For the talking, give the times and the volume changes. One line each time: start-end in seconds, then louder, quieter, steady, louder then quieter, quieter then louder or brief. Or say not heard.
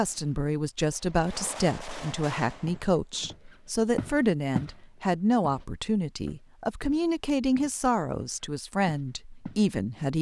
0.0-10.1 steady.